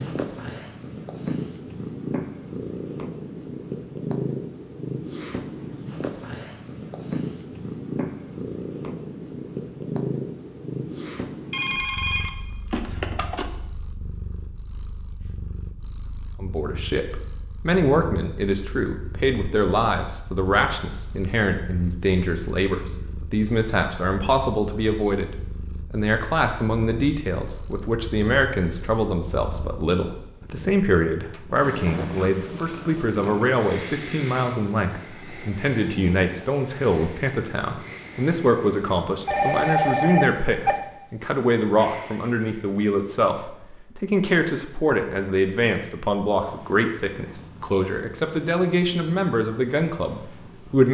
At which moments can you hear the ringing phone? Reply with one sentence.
The ringing phone can be heard from 11.5 to 13.5 s and from 39.2 to 40.8 s.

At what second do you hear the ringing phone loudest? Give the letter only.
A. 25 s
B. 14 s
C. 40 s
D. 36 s
C.